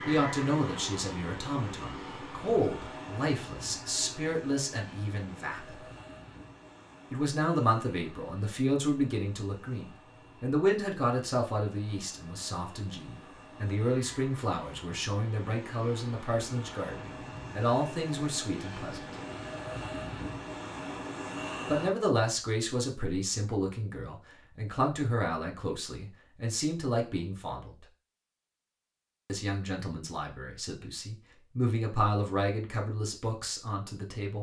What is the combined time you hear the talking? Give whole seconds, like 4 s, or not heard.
29 s.